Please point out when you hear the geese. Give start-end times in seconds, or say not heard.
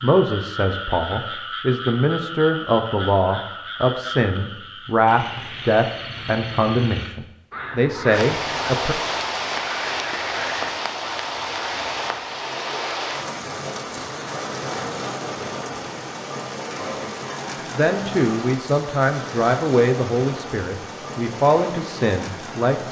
not heard.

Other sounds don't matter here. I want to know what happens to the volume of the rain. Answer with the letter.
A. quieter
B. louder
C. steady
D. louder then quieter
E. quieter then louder
A.